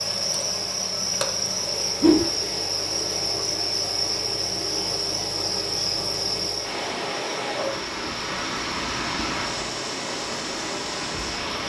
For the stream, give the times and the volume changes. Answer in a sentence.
The stream can be heard from 0.0 to 11.6 s, getting louder.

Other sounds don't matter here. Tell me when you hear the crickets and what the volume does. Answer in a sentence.
The crickets can be heard from 0.0 to 11.6 s, getting quieter.